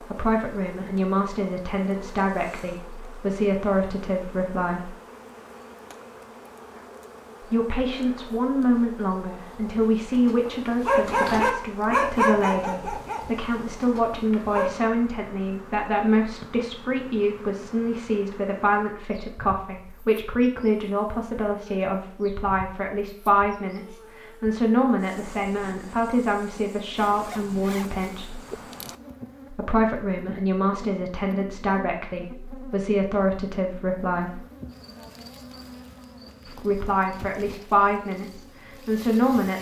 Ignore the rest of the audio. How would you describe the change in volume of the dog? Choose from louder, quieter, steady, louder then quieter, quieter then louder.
louder then quieter.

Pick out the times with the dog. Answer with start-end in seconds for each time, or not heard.
9.4-14.9.